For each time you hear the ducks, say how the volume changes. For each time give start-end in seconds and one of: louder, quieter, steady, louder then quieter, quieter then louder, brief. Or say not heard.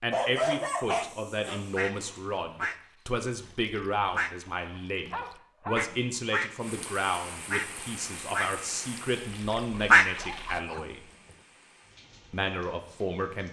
1.5-10.5 louder.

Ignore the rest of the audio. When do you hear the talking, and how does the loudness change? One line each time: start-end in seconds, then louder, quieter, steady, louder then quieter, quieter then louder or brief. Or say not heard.
0.0-11.1 steady
12.3-13.4 brief.